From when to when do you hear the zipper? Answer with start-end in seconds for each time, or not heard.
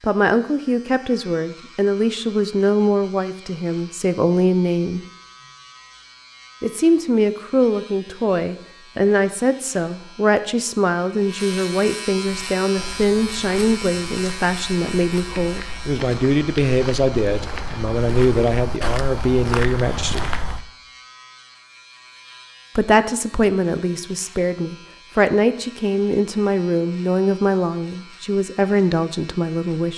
not heard.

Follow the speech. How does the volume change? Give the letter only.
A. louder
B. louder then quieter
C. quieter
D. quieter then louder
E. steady
E.